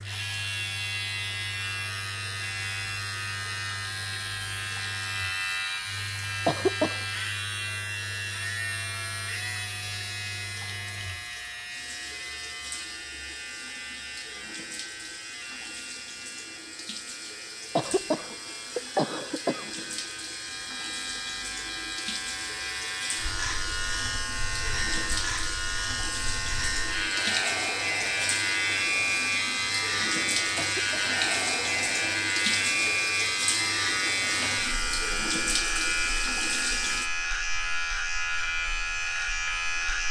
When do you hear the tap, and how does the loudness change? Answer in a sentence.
The tap can be heard from 0.0 to 37.1 s, getting louder.